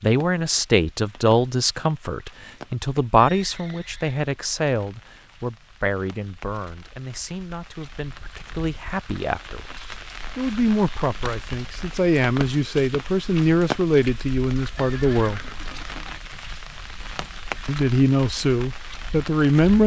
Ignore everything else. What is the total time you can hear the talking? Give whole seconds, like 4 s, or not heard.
17 s.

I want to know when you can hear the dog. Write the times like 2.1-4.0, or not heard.
not heard.